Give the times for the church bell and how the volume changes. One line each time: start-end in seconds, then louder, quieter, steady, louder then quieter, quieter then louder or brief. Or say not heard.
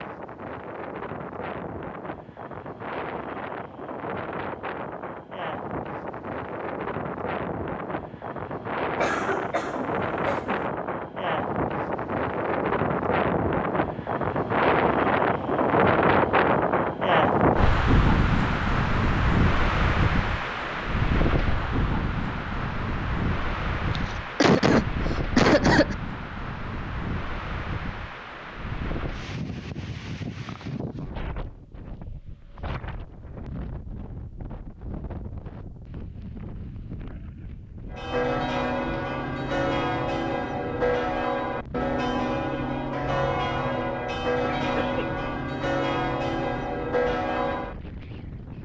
37.9-47.8 steady.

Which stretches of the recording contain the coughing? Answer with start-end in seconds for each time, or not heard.
8.9-10.7, 23.9-25.9, 44.5-45.1.